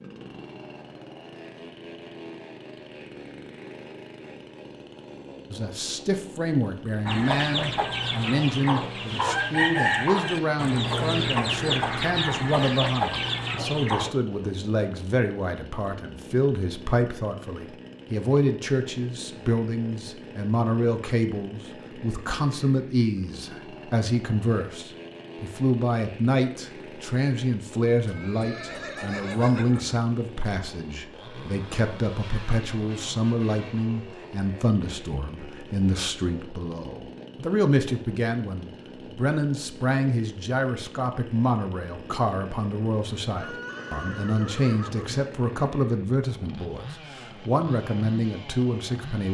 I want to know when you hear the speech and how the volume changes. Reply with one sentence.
The speech can be heard from 5.5 to 49.2 s, at a steady volume.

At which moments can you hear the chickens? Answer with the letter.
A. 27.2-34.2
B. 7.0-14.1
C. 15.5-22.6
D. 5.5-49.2
B.